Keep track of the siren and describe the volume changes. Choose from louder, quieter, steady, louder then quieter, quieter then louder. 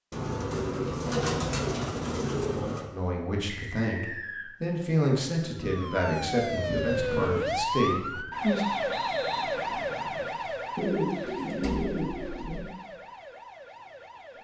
quieter.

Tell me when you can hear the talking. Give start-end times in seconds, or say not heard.
2.9-8.7.